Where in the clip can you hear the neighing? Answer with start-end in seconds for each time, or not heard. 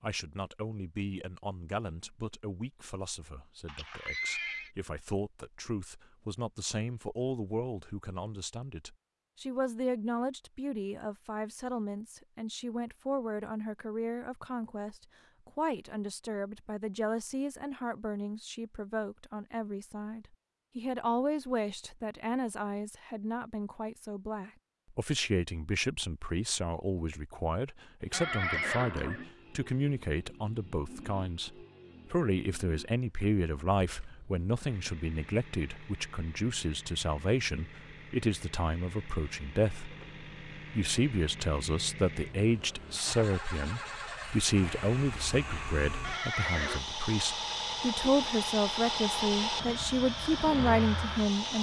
3.6-4.7, 28.1-29.2, 46.0-46.9.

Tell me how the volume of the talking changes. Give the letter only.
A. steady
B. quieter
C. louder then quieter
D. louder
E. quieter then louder
D.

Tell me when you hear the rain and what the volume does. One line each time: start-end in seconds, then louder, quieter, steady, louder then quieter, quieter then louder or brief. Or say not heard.
not heard.